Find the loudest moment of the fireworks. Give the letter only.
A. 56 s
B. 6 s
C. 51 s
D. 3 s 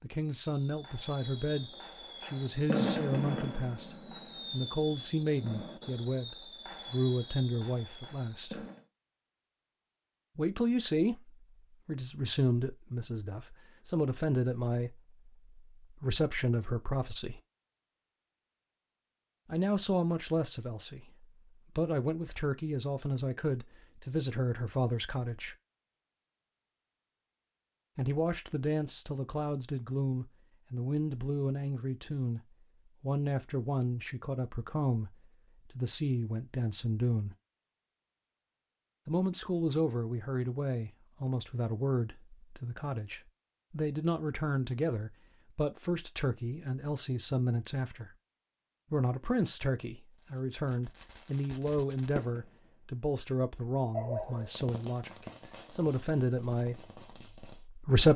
D.